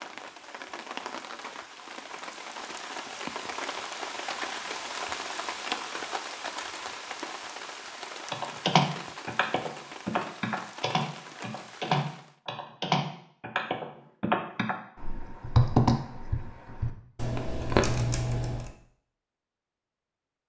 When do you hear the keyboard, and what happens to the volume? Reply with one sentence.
You can hear the keyboard from 8.3 to 18.7 s, at a steady volume.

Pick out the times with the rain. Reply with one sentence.
You can hear the rain from 0.0 to 12.3 s.